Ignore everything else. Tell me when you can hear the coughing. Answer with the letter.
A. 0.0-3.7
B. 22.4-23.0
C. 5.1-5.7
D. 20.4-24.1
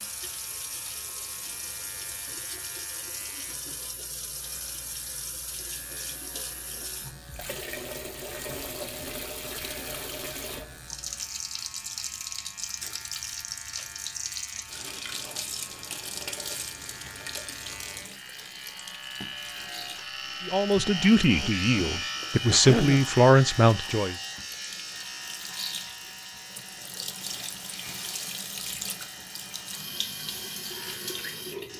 B.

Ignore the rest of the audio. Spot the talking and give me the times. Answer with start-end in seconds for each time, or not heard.
20.4-24.1.